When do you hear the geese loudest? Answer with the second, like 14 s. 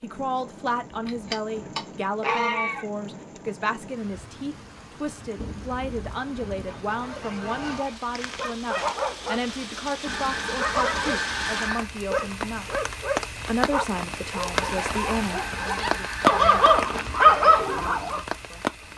2 s.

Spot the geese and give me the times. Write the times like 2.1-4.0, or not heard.
0.9-2.9, 5.3-8.0, 10.1-11.9, 14.6-16.6.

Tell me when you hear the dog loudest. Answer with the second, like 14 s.
17 s.